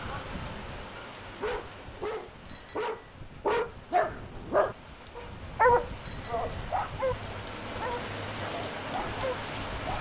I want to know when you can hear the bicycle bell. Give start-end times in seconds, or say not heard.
2.5-3.1, 6.0-6.7.